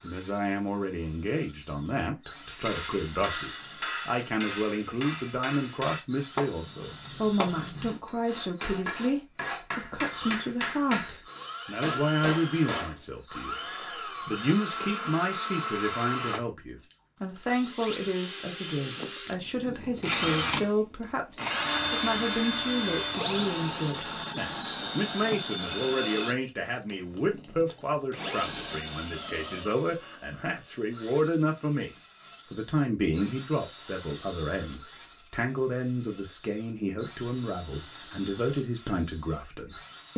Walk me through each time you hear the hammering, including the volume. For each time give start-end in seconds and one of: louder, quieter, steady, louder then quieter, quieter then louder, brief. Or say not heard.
2.5-13.0 steady.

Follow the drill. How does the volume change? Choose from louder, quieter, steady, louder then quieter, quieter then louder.
louder then quieter.